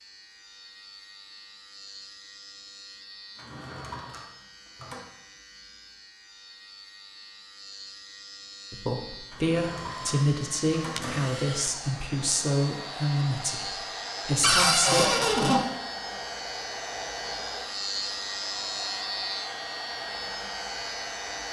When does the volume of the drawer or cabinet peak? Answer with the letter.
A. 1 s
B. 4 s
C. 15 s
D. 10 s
C.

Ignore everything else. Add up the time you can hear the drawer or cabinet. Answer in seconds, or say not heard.
5 s.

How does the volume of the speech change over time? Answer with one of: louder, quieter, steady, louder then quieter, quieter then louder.
steady.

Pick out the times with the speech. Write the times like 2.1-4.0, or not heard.
8.7-15.2.